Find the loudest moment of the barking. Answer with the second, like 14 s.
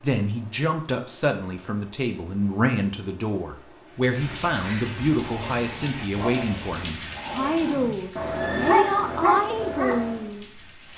9 s.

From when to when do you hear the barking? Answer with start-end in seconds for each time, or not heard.
5.2-10.2.